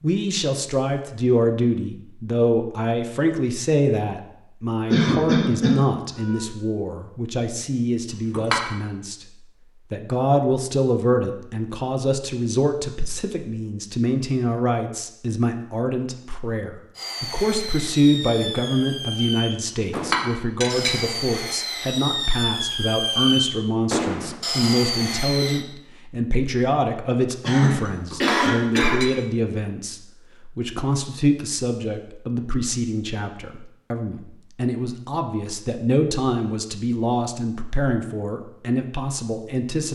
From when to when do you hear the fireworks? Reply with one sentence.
You can hear the fireworks from 16.9 to 25.6 s.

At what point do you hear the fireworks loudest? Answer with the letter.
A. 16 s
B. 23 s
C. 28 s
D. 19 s
B.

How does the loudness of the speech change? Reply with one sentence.
The volume of the speech stays about the same.